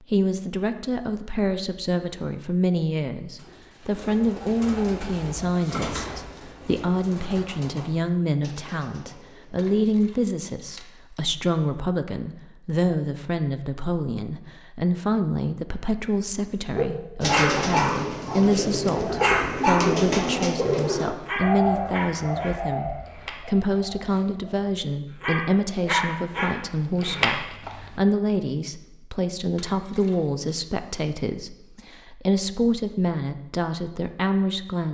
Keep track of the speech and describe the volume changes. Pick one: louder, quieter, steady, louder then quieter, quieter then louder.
steady.